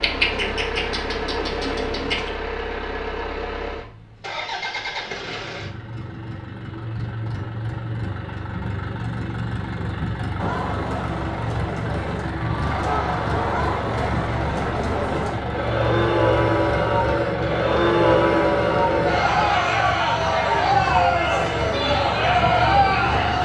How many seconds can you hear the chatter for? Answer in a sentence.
The chatter can be heard for 13 seconds in total.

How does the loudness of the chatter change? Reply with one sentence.
The loudness of the chatter goes up.